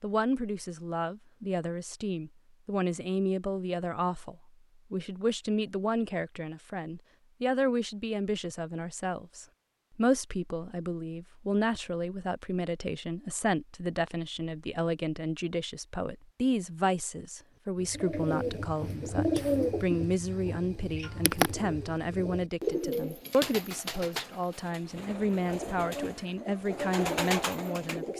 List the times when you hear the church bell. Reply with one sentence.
You can't hear the church bell here.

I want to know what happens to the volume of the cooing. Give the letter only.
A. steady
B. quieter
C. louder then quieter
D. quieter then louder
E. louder
D.